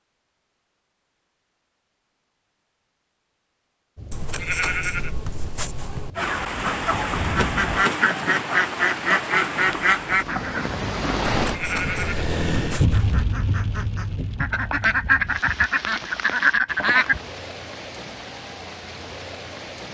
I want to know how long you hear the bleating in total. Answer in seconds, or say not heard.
4 s.